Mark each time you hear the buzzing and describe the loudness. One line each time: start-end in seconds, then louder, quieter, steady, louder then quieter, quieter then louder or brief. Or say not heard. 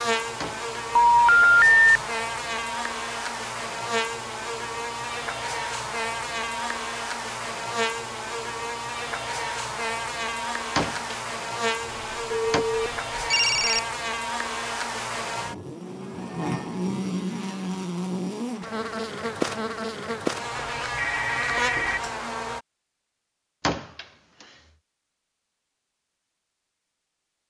0.0-22.6 steady.